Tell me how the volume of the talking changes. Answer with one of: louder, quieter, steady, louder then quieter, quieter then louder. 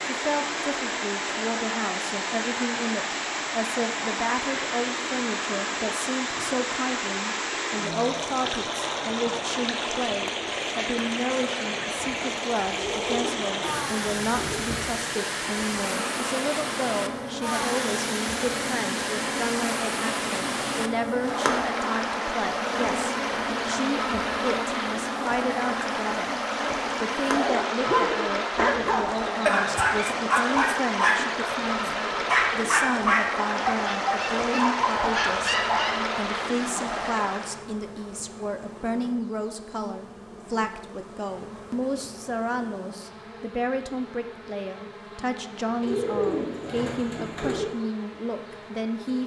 steady.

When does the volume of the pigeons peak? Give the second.
46 s.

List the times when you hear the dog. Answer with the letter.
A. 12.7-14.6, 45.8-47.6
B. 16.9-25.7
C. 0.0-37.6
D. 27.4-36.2
D.